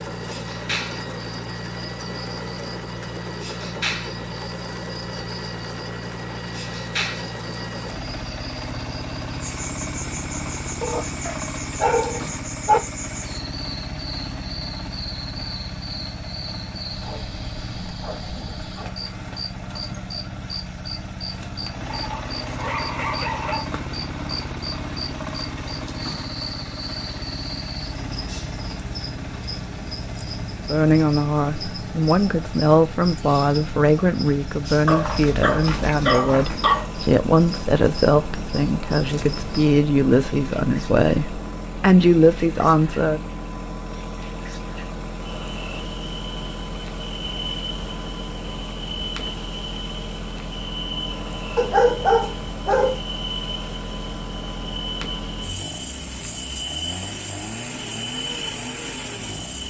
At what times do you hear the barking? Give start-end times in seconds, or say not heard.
10.8-12.8, 21.9-23.6, 34.9-36.9, 51.5-53.0.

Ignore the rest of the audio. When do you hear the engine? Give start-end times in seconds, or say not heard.
0.0-59.6.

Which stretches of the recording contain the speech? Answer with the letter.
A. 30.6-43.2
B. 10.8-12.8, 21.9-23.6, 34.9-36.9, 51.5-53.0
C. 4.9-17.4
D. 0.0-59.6
A.